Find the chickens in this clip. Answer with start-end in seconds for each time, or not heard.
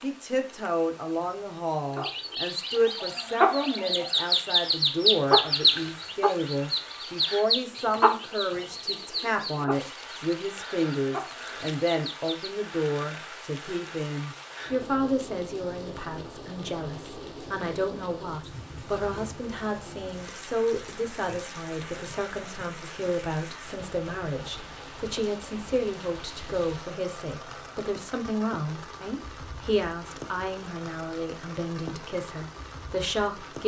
1.9-12.5.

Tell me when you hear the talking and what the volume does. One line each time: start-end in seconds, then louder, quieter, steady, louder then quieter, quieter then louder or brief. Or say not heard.
0.0-33.6 steady.